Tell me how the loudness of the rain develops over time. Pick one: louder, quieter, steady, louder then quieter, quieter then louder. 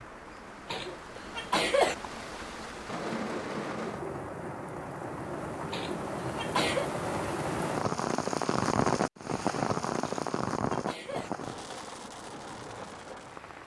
louder then quieter.